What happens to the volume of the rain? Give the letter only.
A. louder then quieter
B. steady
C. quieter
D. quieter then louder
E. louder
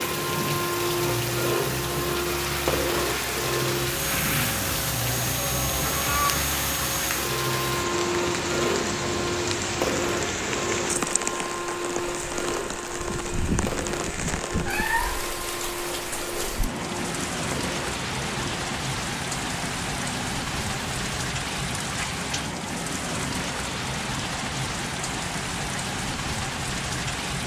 B.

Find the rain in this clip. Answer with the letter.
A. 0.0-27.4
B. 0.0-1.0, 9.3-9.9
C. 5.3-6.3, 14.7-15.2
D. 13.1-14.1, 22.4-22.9
A.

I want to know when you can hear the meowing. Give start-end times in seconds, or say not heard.
5.3-6.3, 14.7-15.2.